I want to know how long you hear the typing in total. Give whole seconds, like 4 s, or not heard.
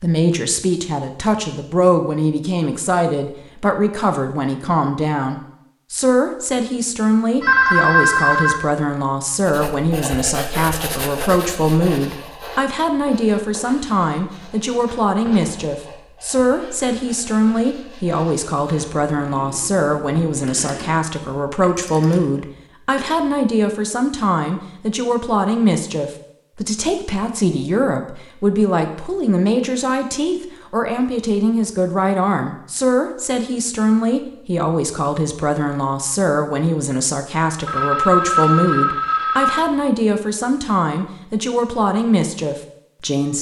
not heard.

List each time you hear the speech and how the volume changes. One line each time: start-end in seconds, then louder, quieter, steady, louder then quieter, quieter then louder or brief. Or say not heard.
0.0-43.3 steady.